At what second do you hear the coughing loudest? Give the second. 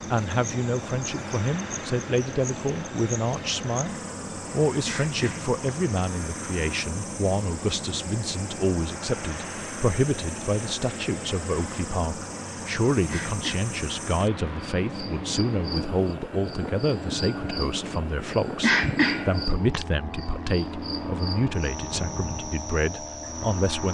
19 s.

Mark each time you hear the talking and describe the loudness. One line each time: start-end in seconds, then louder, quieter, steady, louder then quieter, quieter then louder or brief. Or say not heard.
0.1-23.9 steady.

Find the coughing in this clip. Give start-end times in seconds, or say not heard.
4.8-6.0, 13.1-14.3, 18.6-19.9.